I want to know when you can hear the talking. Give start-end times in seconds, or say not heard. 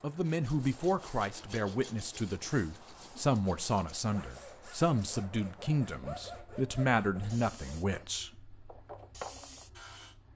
0.0-8.5.